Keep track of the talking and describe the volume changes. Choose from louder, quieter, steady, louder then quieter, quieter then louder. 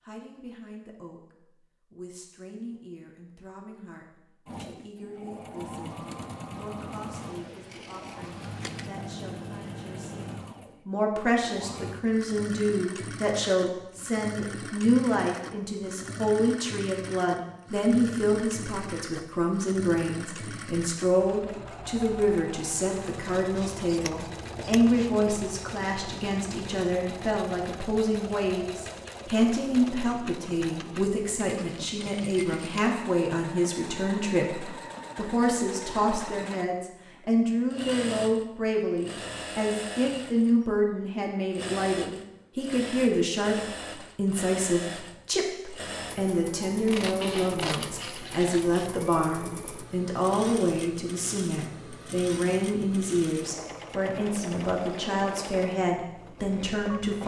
louder.